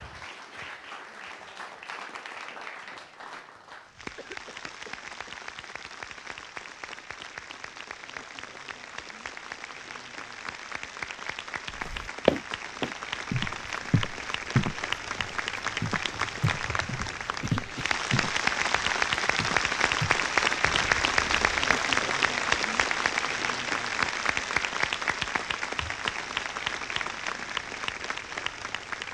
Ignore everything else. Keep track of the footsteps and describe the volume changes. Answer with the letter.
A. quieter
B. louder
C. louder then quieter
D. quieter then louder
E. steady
A.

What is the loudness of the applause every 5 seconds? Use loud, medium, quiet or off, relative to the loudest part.
quiet, quiet, medium, loud, loud, medium.